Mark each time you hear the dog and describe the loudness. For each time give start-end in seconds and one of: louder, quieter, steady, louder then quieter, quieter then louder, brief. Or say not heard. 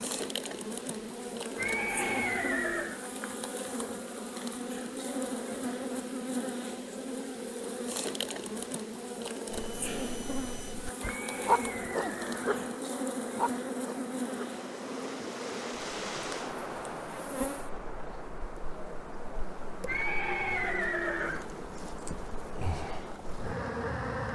9.5-14.6 louder then quieter.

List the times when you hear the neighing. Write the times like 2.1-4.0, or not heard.
1.6-3.0, 11.0-12.8, 19.9-21.4.